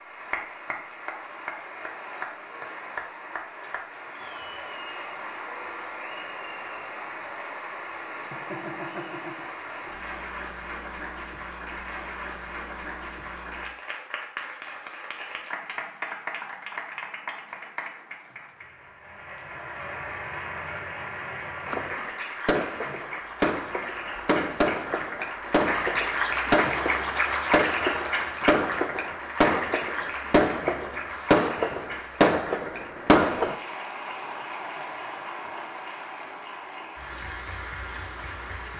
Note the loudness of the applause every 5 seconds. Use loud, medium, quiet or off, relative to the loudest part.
medium, medium, medium, medium, medium, loud, medium, medium.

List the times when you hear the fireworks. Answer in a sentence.
The fireworks can be heard from 21.6 to 33.5 s.